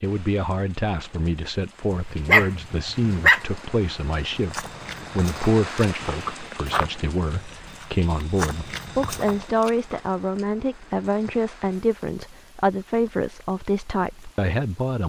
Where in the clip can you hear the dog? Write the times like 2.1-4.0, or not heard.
1.9-3.4.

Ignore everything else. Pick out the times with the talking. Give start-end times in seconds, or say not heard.
0.0-15.0.